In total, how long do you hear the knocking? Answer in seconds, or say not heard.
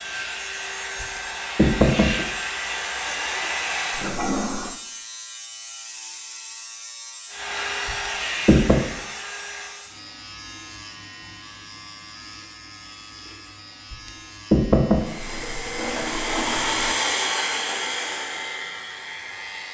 3 s.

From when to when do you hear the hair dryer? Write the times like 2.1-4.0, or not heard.
0.0-4.2, 7.3-9.9, 14.9-19.6.